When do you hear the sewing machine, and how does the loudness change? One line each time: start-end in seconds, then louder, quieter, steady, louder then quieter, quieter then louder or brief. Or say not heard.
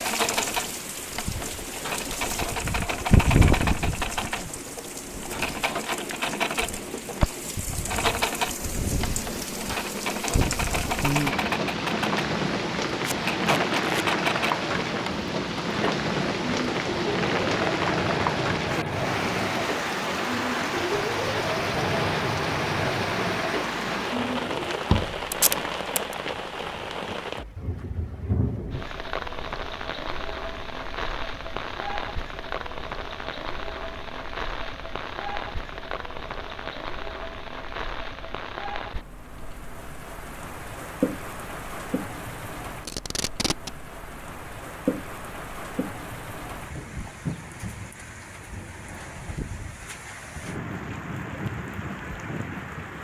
0.0-24.9 steady.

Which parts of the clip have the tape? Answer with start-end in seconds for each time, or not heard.
13.1-14.1, 25.3-26.1, 42.9-43.7.